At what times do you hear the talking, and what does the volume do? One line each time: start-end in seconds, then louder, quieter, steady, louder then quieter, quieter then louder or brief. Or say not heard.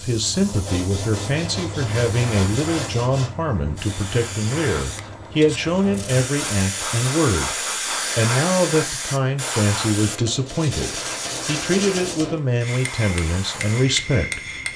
0.0-14.4 steady.